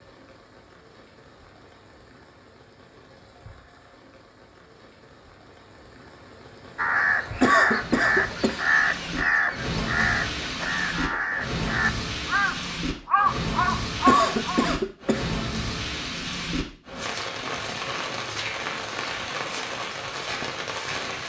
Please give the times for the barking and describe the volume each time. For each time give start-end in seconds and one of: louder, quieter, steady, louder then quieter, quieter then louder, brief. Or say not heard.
not heard.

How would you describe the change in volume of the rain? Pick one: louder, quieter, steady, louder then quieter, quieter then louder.
louder.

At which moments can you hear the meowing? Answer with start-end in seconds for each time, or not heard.
not heard.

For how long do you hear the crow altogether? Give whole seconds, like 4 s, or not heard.
8 s.